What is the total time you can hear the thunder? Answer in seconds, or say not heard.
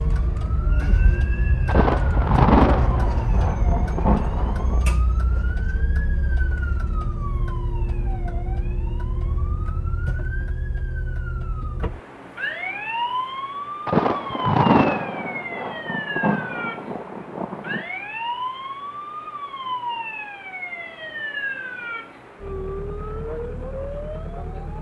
7 s.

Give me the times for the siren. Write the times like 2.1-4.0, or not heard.
0.0-24.7.